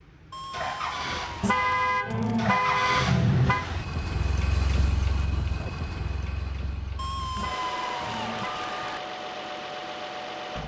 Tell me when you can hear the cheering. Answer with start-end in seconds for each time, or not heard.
0.3-1.7, 7.0-9.0.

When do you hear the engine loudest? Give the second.
3 s.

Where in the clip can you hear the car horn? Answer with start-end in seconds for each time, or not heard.
1.4-3.6, 7.3-8.6.